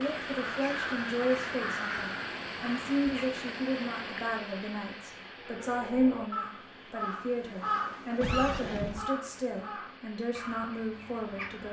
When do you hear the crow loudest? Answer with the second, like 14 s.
8 s.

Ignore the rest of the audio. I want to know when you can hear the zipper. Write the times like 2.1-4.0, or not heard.
8.2-9.1.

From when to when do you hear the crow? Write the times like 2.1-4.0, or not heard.
0.0-3.4, 5.3-11.6.